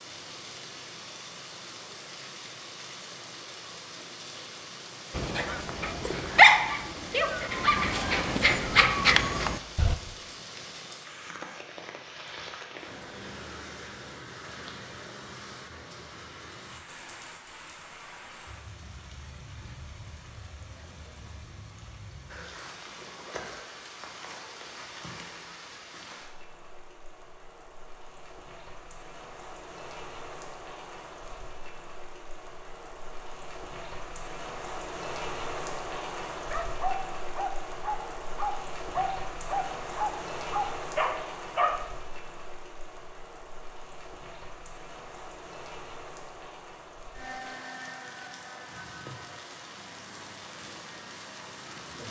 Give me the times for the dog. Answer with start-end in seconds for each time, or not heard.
5.2-9.9, 36.5-41.9.